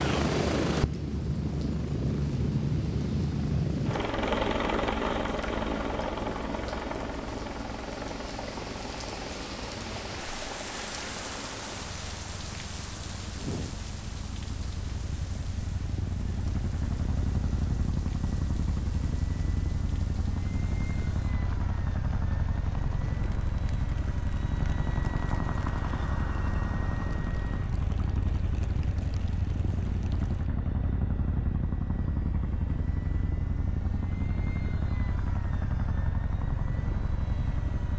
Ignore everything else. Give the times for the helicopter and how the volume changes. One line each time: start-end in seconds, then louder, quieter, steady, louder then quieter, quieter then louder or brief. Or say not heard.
0.0-37.9 quieter then louder.